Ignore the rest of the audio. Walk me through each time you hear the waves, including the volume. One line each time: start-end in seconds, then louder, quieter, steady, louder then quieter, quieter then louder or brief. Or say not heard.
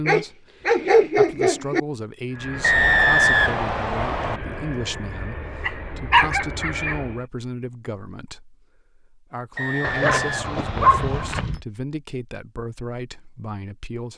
not heard.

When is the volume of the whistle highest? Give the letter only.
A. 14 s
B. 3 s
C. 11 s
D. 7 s
B.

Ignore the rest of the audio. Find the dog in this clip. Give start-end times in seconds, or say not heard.
0.1-1.8, 5.6-7.0, 9.8-11.6.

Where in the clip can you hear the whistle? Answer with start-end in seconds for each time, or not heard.
2.6-4.4, 9.6-11.3.